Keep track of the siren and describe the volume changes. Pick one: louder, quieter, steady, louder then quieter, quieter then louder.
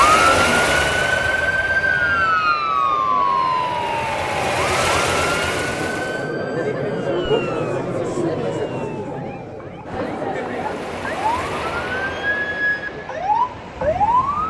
quieter then louder.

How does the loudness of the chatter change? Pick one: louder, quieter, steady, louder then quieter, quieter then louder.
louder then quieter.